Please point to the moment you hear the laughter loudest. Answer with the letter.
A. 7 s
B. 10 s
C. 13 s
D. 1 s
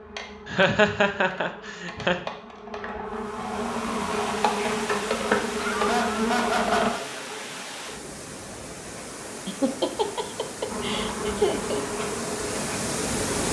D.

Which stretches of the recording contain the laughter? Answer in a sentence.
The laughter can be heard from 0.5 to 2.1 s, from 5.5 to 7.0 s and from 9.4 to 11.8 s.